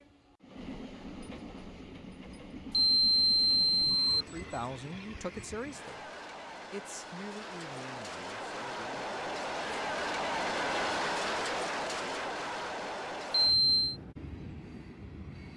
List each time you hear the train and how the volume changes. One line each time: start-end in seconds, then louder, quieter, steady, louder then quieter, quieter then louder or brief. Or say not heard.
0.0-15.5 louder then quieter.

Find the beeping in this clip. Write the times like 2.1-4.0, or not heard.
2.7-4.2, 13.3-13.9.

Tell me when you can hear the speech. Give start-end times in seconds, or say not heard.
4.0-6.1, 6.7-9.1.